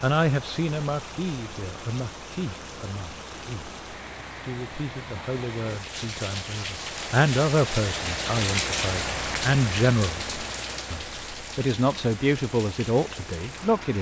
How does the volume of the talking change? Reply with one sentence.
The volume of the talking goes down, then up.